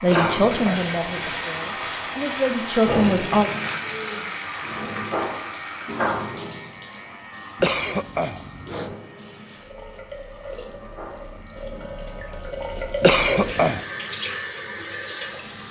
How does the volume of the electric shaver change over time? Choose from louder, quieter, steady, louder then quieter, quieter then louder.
quieter.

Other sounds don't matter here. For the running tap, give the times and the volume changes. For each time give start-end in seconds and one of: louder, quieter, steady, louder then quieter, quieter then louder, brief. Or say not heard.
0.0-15.6 quieter then louder.